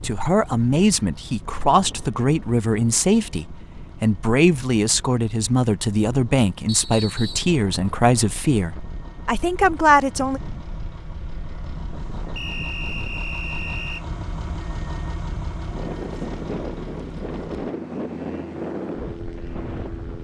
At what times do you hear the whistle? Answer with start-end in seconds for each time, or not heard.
6.7-7.5, 12.3-14.1.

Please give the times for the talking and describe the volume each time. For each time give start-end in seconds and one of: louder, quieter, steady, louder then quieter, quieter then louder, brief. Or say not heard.
0.0-10.4 steady.